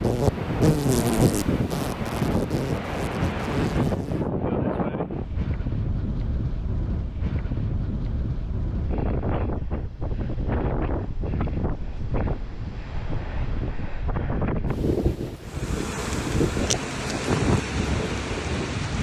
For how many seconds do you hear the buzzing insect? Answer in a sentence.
You can hear the buzzing insect for 8 seconds altogether.